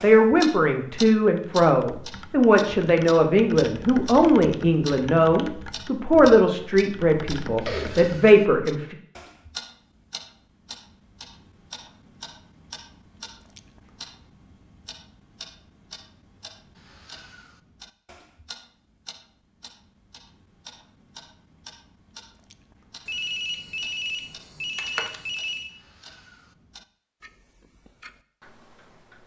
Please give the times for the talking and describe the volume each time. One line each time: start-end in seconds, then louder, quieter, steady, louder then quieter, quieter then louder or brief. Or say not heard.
0.0-8.9 steady.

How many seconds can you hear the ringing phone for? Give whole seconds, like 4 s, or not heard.
3 s.